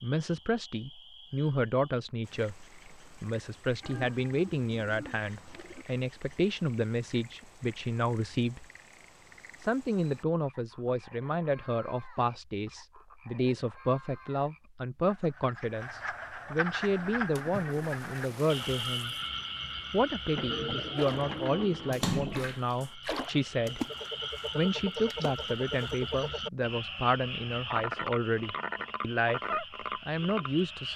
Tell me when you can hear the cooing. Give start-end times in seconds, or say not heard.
3.8-5.8, 20.4-22.6.